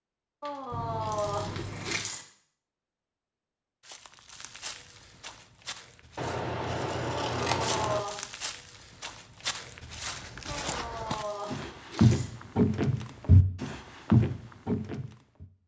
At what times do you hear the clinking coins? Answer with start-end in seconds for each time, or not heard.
0.4-2.2, 7.1-8.2, 10.4-12.3.